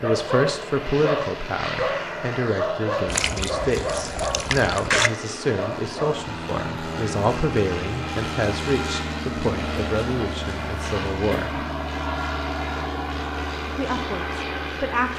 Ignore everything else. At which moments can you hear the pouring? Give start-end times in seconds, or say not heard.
3.0-5.1.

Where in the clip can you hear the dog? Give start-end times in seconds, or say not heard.
0.0-6.3.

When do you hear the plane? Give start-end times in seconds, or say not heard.
0.0-15.1.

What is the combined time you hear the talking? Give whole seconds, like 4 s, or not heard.
13 s.